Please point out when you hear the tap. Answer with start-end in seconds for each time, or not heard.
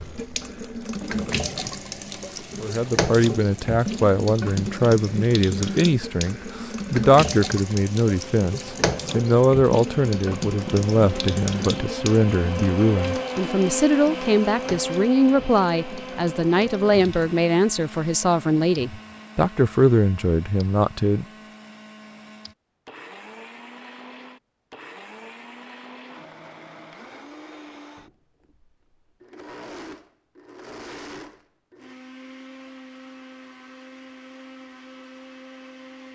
0.0-17.3.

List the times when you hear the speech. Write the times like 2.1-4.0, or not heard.
2.6-21.2.